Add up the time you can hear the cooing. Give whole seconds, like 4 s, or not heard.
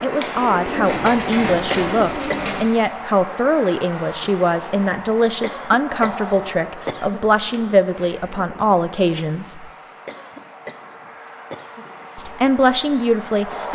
2 s.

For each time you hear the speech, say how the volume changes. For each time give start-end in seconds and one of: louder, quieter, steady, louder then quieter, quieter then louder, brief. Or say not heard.
0.0-9.7 steady
12.2-13.6 brief.